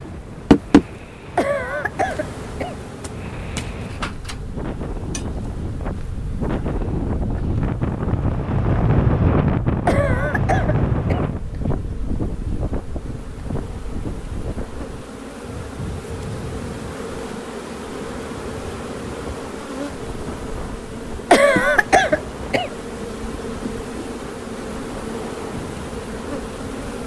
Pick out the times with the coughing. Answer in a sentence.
You can hear the coughing from 1.4 to 2.8 s, from 9.8 to 11.2 s and from 21.3 to 22.8 s.